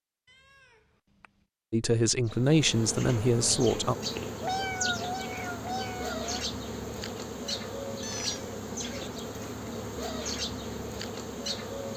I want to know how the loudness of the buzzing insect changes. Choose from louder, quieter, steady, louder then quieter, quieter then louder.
steady.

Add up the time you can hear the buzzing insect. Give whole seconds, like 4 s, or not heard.
10 s.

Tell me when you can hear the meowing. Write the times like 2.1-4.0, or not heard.
0.2-1.4, 4.4-6.3, 8.0-8.6.